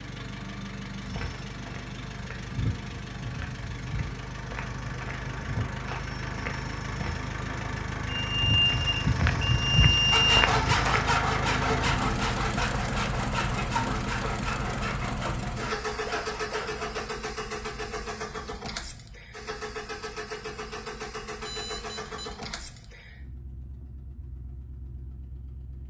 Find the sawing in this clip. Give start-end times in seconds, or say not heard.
10.1-17.1.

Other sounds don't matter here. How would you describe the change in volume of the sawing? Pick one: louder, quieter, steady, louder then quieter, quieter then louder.
quieter.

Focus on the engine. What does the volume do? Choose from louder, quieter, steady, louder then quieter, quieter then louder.
louder then quieter.